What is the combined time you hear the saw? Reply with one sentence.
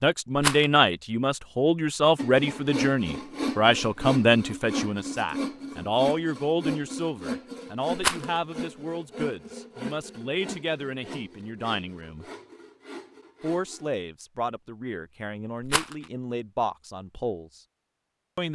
The saw can be heard for 12 seconds in total.